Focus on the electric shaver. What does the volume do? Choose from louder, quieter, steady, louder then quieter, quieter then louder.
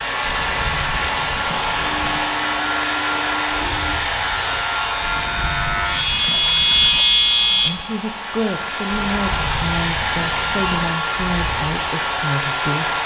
louder.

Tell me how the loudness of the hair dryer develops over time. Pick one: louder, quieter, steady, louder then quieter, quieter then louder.
quieter then louder.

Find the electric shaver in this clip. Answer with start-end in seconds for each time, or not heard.
1.6-7.7.